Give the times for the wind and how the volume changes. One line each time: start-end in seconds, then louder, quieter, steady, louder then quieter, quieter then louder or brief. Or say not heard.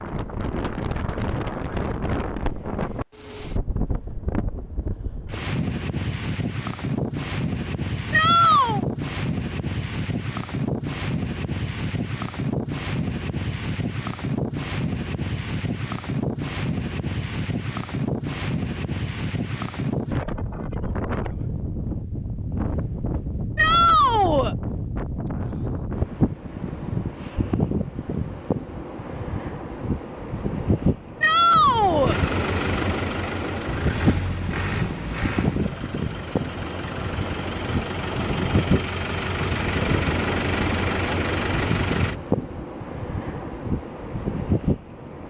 0.0-45.2 steady.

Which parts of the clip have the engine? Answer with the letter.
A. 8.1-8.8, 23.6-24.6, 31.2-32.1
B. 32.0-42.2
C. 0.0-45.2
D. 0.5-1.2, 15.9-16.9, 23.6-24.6
B.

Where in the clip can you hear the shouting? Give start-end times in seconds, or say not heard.
8.1-8.8, 23.6-24.6, 31.2-32.1.